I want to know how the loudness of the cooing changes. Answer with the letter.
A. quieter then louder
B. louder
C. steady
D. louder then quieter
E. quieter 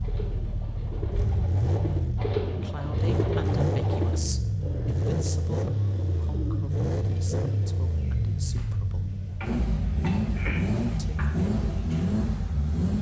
A.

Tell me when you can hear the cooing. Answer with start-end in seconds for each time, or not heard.
0.0-12.2.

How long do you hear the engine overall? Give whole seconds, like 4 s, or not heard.
13 s.